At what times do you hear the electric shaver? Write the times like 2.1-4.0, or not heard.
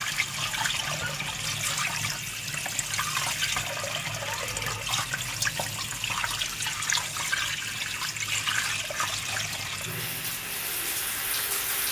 0.0-11.8.